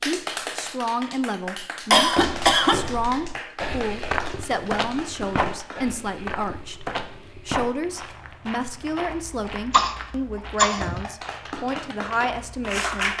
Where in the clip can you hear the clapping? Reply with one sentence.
You can hear the clapping from 0.0 to 5.9 s and from 10.7 to 13.1 s.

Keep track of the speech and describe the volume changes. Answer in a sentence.
The volume of the speech stays about the same.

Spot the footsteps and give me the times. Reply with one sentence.
The footsteps can be heard from 1.9 to 13.1 s.